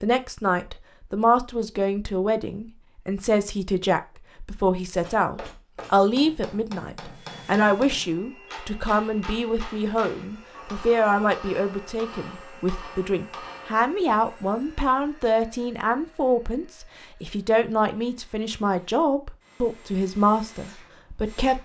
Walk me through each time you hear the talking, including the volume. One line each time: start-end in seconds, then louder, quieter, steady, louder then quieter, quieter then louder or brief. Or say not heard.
0.0-21.5 steady.